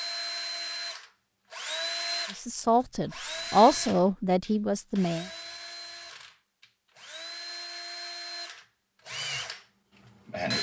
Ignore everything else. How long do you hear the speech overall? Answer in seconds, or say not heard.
3 s.